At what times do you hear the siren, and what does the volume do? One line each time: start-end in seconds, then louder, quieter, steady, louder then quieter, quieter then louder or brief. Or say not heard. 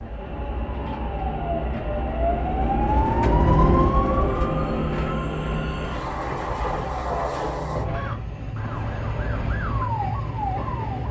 0.0-11.0 louder then quieter.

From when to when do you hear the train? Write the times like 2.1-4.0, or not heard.
0.0-11.0.